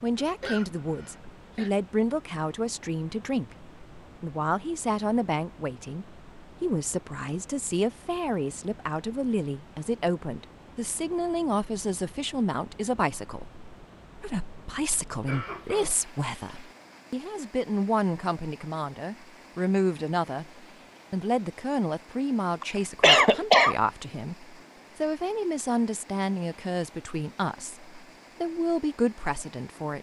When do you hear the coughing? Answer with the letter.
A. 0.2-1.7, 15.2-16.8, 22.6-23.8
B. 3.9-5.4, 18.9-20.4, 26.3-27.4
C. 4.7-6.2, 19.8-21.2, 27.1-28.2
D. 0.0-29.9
A.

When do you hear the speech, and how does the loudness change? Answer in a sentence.
The speech can be heard from 0.0 to 29.9 s, at a steady volume.